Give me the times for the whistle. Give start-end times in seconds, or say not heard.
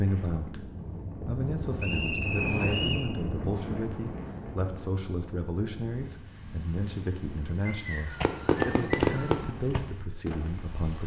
1.8-3.0, 7.7-9.4.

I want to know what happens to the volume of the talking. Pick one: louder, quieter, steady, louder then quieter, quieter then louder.
steady.